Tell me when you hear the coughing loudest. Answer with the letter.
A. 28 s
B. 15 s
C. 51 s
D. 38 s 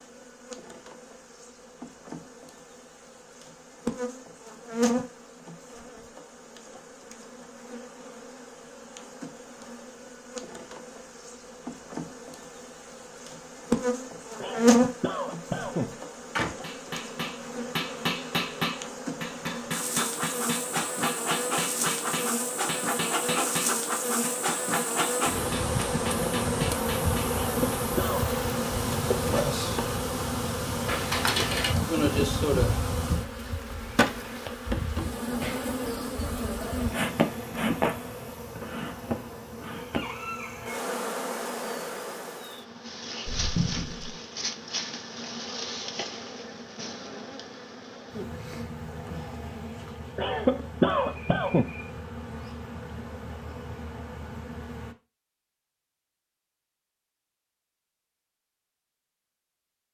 C.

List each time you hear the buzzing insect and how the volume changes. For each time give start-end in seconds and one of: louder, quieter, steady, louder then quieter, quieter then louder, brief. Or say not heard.
0.0-55.0 louder then quieter.